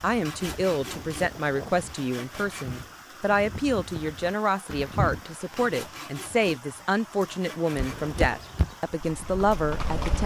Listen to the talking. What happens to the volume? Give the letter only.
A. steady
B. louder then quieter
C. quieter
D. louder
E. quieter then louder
A.